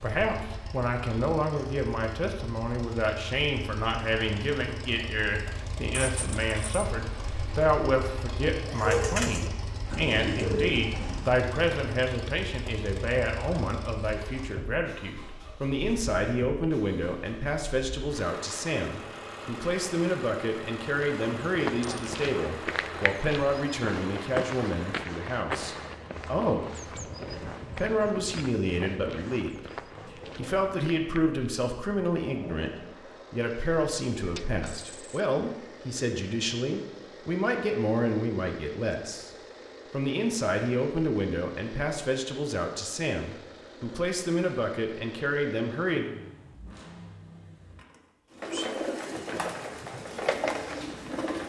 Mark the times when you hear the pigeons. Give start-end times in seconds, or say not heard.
8.7-11.3, 48.4-51.4.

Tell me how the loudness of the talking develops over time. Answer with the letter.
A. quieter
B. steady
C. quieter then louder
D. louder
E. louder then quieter
B.